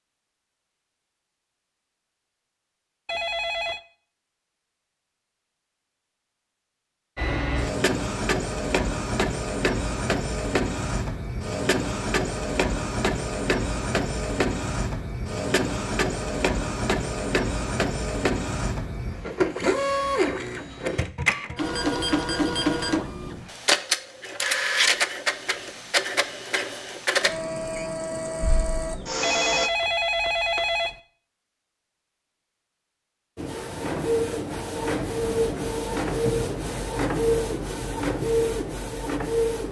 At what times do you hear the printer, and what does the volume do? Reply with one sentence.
The printer can be heard from 7.2 to 29.7 s, at a steady volume; and from 33.4 to 39.6 s, at a steady volume.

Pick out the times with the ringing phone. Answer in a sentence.
The ringing phone can be heard from 3.0 to 3.8 s and from 29.2 to 30.9 s.